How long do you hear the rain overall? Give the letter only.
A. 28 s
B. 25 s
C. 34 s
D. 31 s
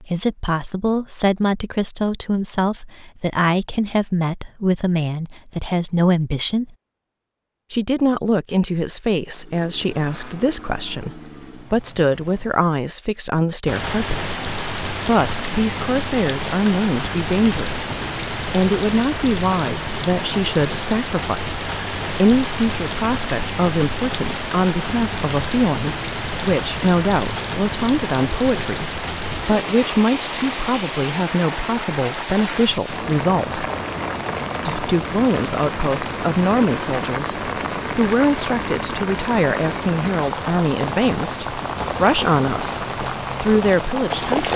D.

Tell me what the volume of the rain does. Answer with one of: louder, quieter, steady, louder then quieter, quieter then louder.
steady.